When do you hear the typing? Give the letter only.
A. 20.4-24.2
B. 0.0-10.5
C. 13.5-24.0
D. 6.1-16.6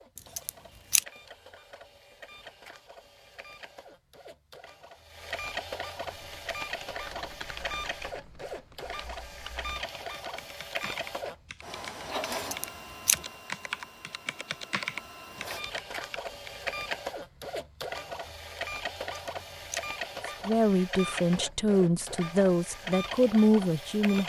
D.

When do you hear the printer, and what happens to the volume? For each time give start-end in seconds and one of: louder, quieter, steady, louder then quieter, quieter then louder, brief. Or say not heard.
0.0-24.2 louder.